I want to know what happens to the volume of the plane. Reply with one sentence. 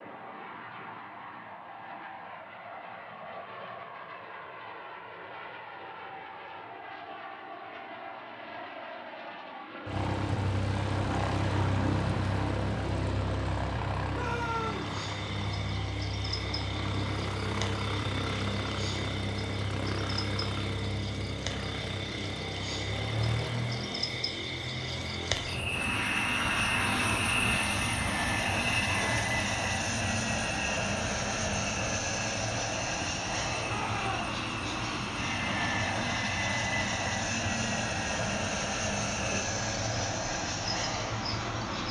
The volume of the plane goes up.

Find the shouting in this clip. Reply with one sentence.
The shouting can be heard from 14.1 to 14.9 s and from 33.6 to 34.3 s.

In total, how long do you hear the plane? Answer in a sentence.
You can hear the plane for 42 seconds altogether.